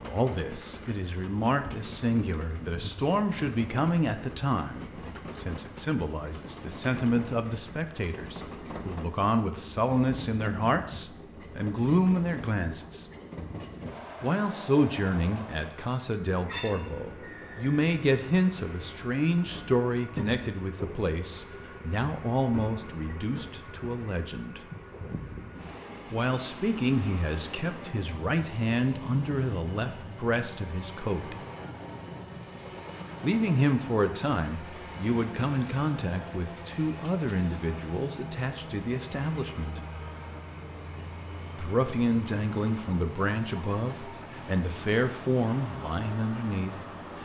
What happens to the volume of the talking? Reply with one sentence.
The volume of the talking stays about the same.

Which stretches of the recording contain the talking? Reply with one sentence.
You can hear the talking from 0.0 to 13.1 s, from 14.2 to 24.6 s, from 26.1 to 31.4 s, from 33.2 to 39.8 s and from 41.5 to 47.1 s.